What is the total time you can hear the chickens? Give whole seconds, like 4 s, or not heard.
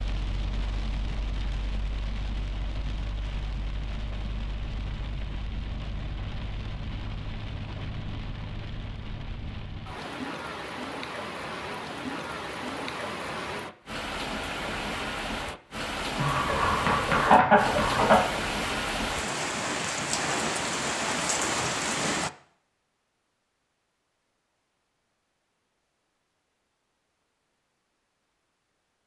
2 s.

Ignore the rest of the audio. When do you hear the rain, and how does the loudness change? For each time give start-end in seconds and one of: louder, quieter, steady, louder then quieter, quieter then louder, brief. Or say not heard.
0.0-22.3 louder.